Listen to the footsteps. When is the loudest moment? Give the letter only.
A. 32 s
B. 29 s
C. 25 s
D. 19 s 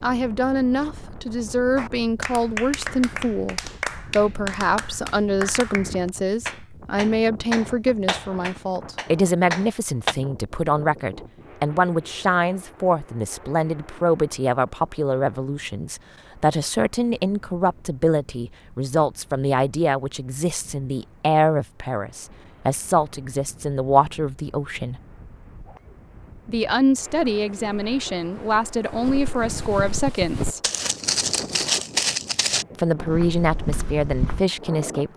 A.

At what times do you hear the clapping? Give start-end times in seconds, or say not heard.
1.8-10.2.